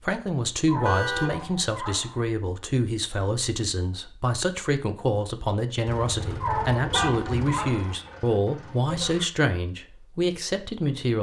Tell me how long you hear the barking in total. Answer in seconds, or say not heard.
3 s.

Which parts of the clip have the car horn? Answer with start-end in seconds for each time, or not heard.
0.8-1.4, 6.8-7.2.